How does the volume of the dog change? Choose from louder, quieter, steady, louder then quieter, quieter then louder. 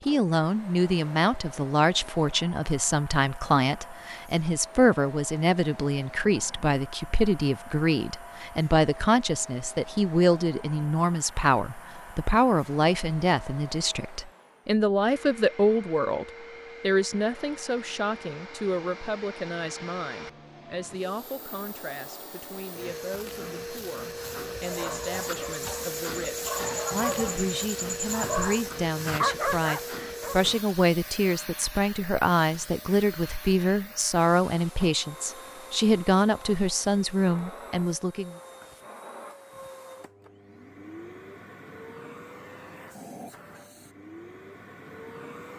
louder.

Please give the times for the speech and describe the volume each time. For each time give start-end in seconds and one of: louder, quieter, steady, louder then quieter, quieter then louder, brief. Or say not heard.
0.1-38.4 quieter then louder.